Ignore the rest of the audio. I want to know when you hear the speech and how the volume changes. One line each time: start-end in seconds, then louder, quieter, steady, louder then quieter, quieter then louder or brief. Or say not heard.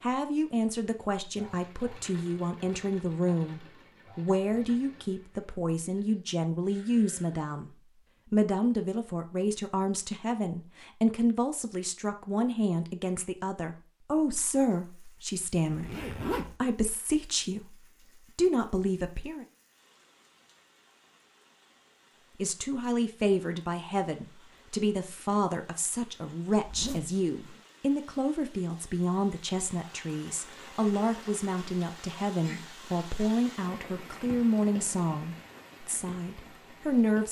0.0-19.4 steady
22.4-37.2 steady.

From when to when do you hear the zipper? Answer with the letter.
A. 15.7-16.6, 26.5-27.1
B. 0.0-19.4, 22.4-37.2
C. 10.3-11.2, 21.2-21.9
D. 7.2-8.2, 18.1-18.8
A.